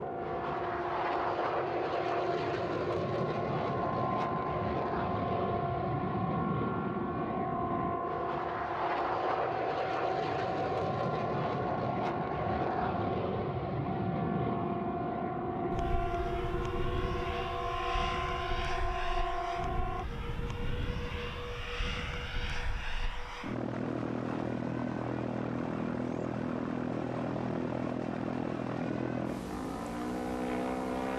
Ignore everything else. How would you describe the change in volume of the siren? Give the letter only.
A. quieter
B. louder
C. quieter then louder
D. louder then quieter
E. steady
E.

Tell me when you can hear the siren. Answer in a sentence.
You can hear the siren from 0.0 to 20.1 s.